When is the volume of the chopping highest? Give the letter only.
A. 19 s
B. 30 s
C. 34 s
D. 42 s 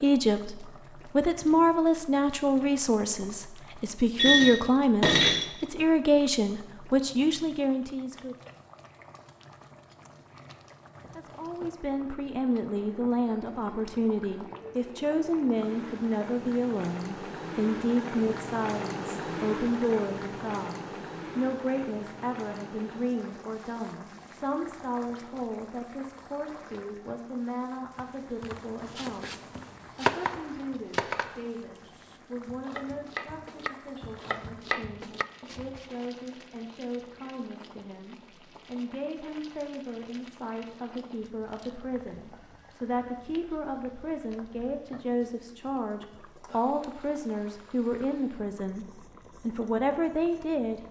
B.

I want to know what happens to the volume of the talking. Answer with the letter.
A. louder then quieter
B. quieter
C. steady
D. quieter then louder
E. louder
D.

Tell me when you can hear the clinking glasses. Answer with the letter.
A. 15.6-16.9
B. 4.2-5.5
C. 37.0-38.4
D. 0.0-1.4
B.